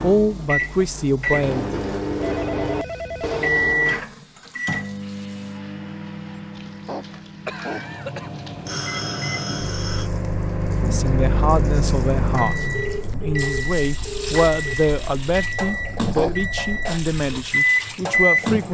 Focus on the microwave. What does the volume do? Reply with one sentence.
The volume of the microwave goes down, then up.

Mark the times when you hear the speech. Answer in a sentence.
The speech can be heard from 0.0 to 1.7 s and from 10.8 to 18.7 s.